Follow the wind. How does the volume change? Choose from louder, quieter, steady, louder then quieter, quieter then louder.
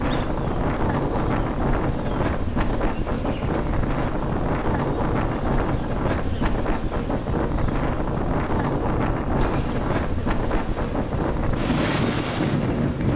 steady.